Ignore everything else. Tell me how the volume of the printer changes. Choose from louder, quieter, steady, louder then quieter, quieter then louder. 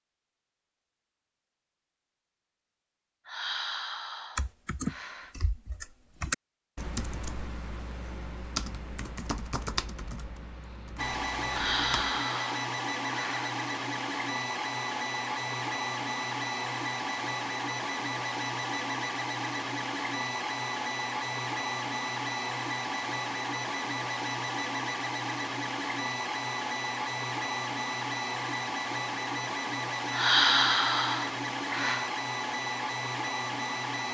steady.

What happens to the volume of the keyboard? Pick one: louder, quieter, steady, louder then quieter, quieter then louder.
quieter.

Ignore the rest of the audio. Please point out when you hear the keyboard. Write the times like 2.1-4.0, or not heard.
4.3-12.2.